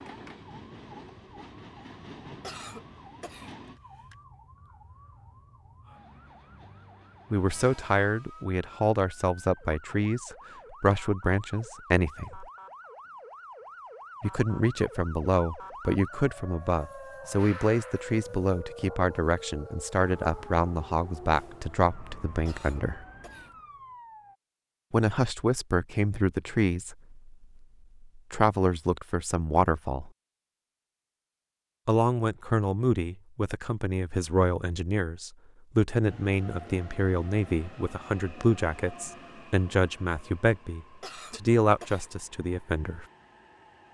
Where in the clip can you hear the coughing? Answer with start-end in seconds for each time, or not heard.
2.4-4.2, 22.4-23.6, 41.0-42.1.